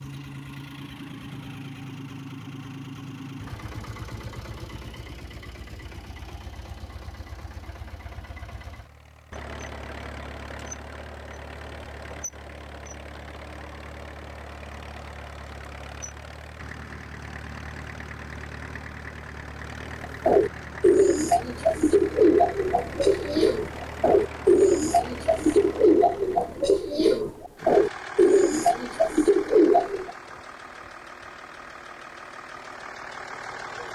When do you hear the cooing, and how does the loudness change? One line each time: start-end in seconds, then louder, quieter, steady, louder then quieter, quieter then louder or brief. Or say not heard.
20.0-30.1 steady.